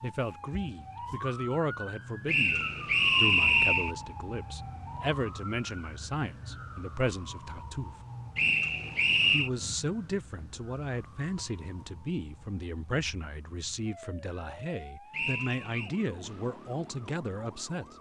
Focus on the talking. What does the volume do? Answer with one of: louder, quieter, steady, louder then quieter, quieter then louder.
steady.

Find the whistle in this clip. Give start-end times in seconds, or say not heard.
2.2-4.0, 8.3-9.5, 15.1-15.9.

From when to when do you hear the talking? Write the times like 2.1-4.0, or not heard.
0.0-8.0, 9.3-17.9.